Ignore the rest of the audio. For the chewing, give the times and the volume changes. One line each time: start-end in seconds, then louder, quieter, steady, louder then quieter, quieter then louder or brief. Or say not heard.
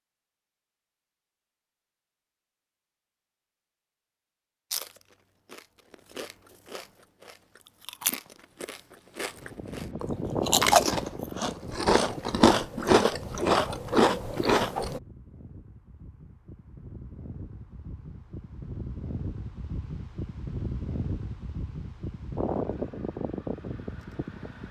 4.7-15.0 louder.